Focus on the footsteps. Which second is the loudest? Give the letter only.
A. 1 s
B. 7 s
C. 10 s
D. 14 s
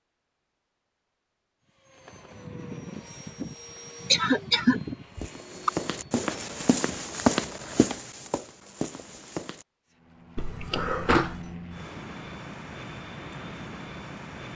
B.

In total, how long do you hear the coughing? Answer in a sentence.
The coughing can be heard for 3 seconds in total.